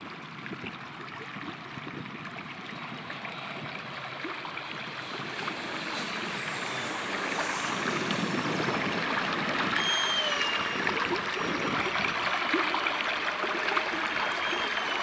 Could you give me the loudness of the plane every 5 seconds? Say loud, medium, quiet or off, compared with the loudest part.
medium, loud, loud.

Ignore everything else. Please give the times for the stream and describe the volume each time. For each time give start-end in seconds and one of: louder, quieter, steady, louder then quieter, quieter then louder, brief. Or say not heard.
0.0-14.9 louder.